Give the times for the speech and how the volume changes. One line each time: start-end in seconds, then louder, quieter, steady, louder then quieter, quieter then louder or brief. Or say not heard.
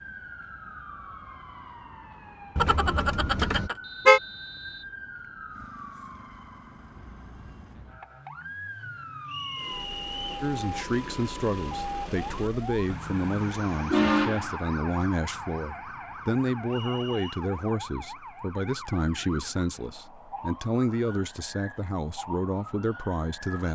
10.4-23.7 steady.